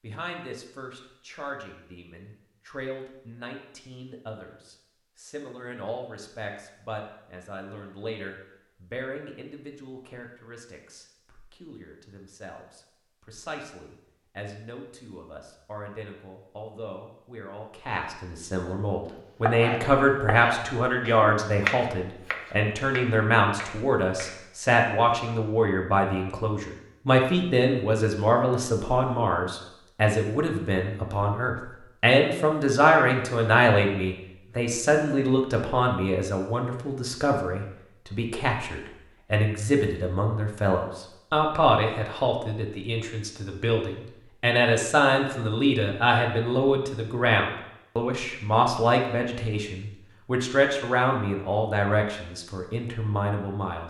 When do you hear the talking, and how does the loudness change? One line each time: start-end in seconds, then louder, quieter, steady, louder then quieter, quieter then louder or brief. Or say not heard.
0.0-53.8 louder.